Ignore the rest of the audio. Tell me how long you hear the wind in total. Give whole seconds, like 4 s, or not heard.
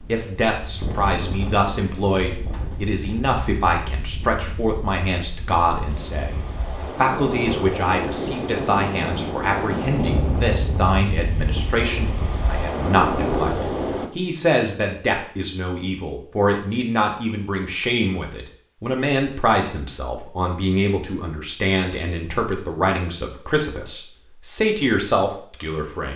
14 s.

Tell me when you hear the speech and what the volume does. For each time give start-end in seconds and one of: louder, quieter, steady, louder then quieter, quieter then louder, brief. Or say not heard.
0.1-26.1 steady.